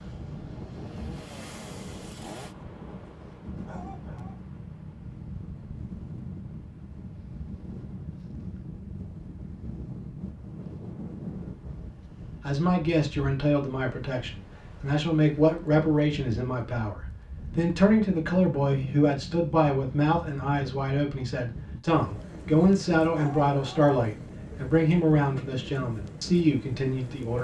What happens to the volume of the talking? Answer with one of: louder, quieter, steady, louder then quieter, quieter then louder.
steady.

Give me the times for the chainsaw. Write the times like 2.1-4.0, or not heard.
0.0-2.5.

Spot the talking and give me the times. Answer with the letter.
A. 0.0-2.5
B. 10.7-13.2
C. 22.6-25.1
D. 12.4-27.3
D.